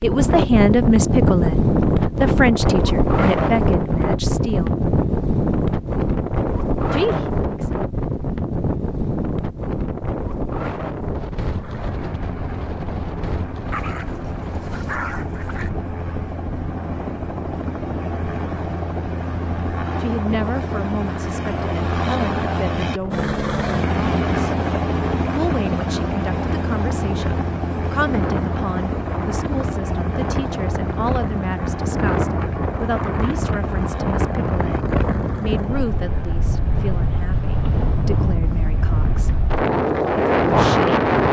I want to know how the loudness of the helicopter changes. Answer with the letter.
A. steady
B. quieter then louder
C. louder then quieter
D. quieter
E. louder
C.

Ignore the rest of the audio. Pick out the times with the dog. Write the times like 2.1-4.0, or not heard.
13.7-15.7.